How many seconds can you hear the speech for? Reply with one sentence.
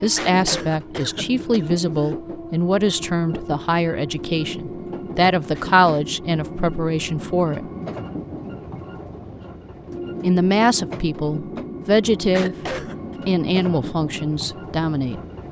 The speech can be heard for 13 seconds in total.